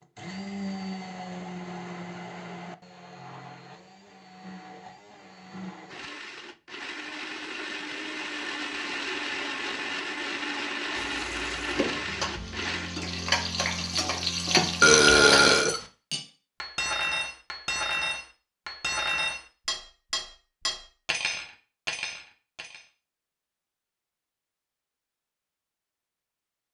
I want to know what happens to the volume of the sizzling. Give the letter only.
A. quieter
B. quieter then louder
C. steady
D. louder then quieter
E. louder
E.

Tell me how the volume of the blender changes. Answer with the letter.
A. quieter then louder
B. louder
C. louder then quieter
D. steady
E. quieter
A.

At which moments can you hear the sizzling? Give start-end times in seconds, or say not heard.
10.9-15.6.